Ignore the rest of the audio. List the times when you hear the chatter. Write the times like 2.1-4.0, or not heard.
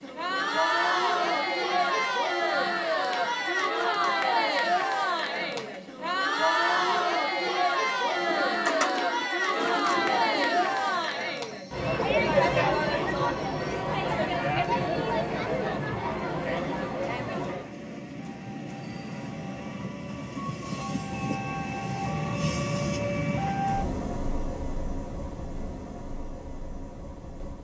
0.0-17.8.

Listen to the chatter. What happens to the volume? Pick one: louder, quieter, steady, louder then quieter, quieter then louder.
steady.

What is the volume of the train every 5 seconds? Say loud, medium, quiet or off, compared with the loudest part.
quiet, quiet, quiet, medium, loud, medium.